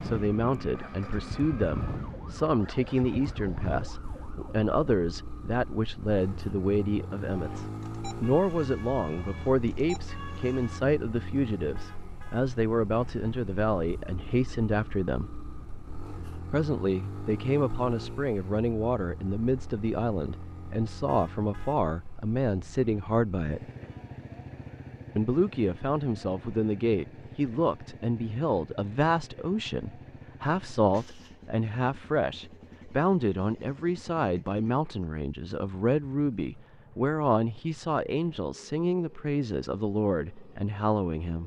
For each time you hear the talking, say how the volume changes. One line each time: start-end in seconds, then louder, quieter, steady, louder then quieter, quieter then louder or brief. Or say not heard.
0.0-15.3 steady
16.5-23.7 steady
25.1-41.4 steady.